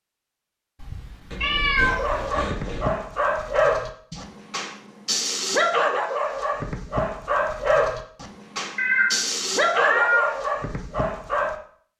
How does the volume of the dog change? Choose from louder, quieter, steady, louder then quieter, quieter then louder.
steady.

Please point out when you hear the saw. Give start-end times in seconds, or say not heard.
1.3-2.9.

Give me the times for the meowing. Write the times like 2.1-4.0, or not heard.
0.8-2.2, 8.8-10.3.